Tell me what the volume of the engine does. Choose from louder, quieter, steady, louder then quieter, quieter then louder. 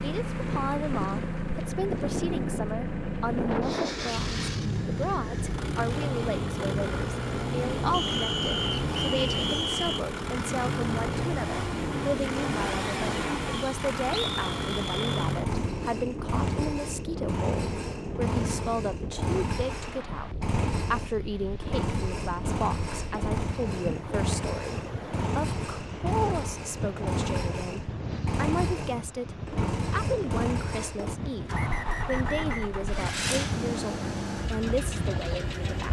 steady.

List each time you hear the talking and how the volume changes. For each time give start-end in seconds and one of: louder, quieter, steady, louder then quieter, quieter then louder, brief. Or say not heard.
0.0-35.8 steady.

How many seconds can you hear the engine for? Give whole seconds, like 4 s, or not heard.
36 s.